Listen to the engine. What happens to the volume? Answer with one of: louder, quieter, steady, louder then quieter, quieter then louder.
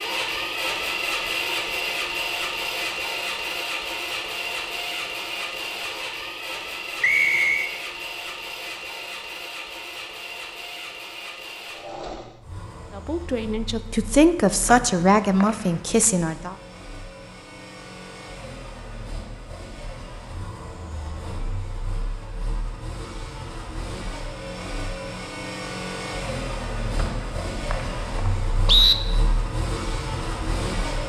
quieter then louder.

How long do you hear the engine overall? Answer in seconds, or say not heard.
31 s.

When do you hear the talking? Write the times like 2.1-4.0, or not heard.
12.9-16.6.